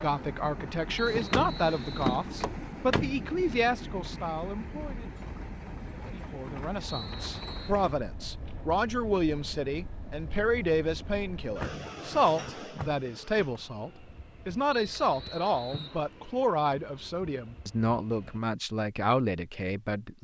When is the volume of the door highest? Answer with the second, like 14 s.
2 s.